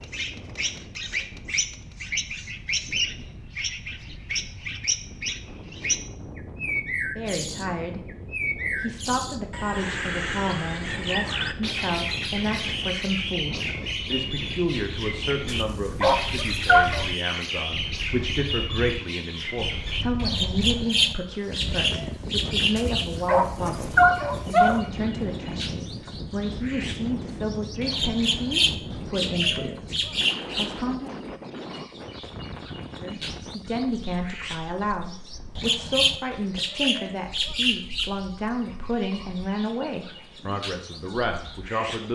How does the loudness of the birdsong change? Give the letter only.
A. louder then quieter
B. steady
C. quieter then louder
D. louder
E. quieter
B.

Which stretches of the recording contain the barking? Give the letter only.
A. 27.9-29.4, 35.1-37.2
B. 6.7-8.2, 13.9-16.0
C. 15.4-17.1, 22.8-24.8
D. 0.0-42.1
C.